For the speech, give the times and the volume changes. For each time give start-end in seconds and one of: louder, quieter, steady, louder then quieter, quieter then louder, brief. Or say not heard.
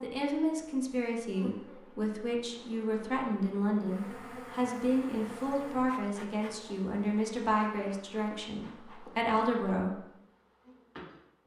0.0-9.9 steady.